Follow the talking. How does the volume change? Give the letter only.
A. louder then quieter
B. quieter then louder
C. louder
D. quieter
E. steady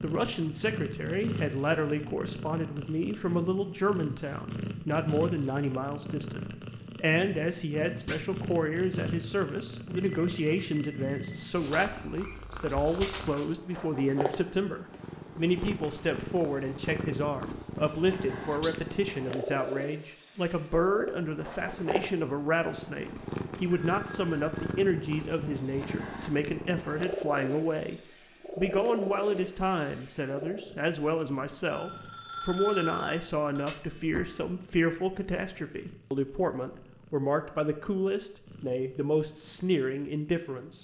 E.